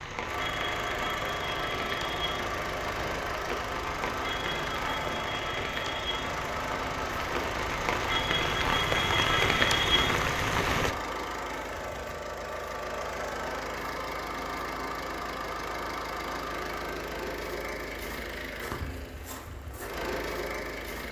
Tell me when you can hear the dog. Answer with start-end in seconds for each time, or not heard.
not heard.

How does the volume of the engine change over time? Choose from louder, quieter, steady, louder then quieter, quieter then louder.
steady.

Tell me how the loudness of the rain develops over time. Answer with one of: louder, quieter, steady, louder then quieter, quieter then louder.
louder.